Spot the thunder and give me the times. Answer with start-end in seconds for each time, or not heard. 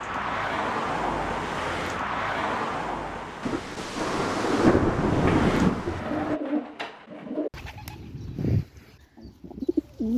3.4-6.0.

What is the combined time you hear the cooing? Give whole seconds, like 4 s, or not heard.
5 s.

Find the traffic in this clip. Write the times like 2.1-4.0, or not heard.
0.0-6.4.